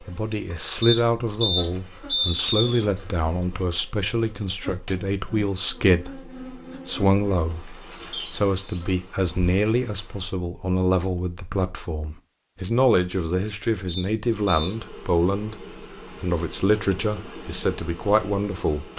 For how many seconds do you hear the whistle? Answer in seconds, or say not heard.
4 s.